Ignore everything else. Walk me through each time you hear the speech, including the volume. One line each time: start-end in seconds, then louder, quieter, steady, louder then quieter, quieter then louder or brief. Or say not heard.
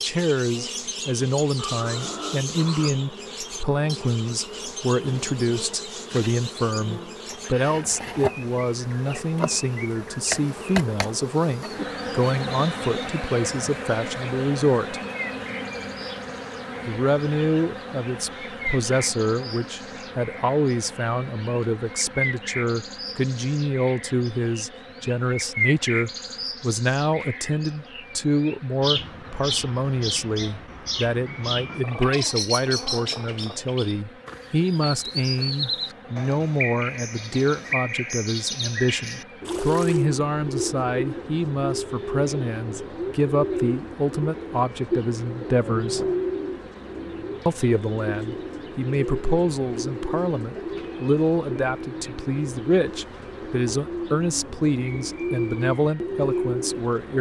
0.0-15.0 steady
16.9-46.1 steady
47.5-57.1 steady.